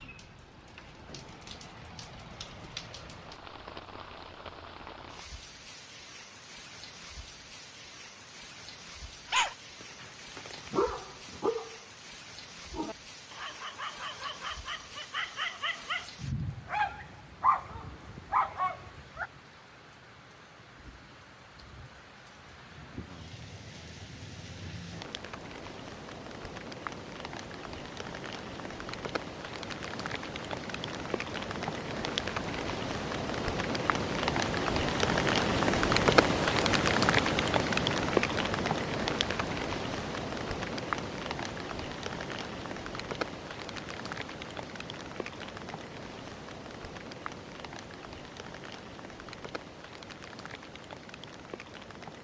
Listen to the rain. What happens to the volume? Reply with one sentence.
The volume of the rain goes up, then down.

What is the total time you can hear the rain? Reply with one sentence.
You can hear the rain for 52 seconds altogether.